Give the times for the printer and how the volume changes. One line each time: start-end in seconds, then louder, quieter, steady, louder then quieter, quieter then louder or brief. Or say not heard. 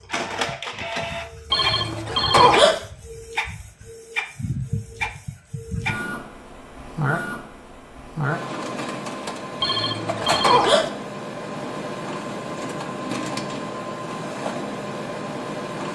0.0-15.8 steady.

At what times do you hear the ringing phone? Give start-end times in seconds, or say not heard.
1.5-2.8, 9.6-10.9.